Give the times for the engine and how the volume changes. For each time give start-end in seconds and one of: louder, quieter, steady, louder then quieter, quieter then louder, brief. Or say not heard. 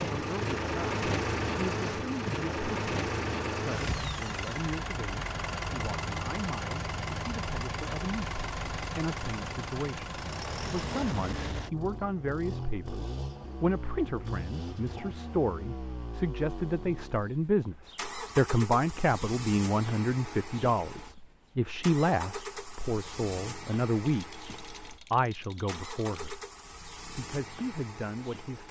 0.0-28.6 quieter.